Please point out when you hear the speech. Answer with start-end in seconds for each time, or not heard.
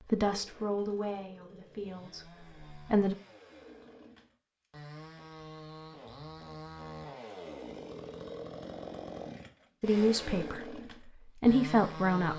0.1-3.1, 9.8-12.3.